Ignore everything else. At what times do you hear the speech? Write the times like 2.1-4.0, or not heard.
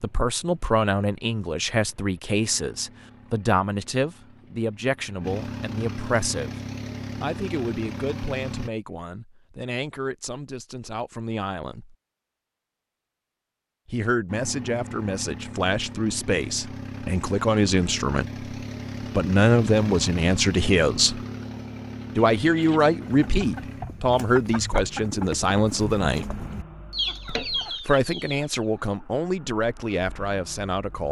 0.0-6.5, 7.2-11.9, 13.8-21.2, 22.1-26.2, 27.2-31.0.